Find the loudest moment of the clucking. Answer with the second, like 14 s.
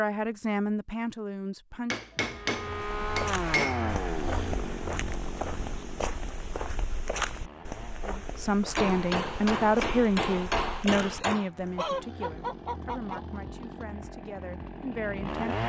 12 s.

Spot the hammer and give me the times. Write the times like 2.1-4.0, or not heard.
1.9-3.9, 8.8-11.5.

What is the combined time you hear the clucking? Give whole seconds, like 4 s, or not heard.
2 s.